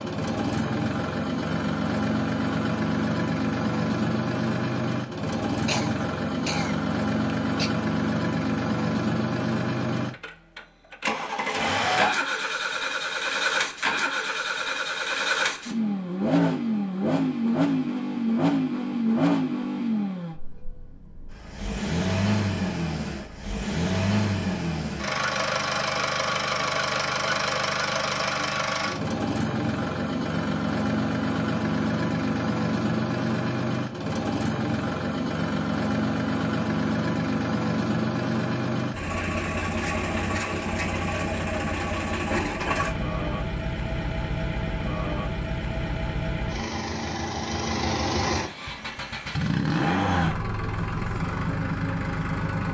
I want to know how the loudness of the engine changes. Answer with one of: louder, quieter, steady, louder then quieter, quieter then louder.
steady.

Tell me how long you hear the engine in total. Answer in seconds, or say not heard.
53 s.